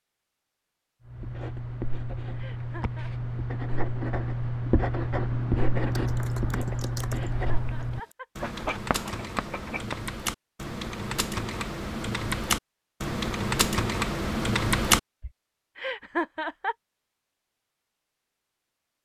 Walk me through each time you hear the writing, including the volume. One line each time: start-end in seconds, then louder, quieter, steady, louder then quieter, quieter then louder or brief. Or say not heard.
1.1-10.0 louder then quieter.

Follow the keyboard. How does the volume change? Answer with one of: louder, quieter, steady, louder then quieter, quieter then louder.
louder.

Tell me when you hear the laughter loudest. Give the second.
16 s.